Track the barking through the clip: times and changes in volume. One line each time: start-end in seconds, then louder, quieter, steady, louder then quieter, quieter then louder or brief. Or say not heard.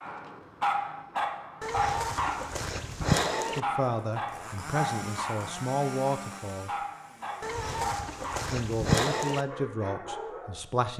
0.0-8.6 quieter
9.4-10.7 brief.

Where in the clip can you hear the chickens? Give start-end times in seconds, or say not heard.
1.6-3.6, 7.4-9.4.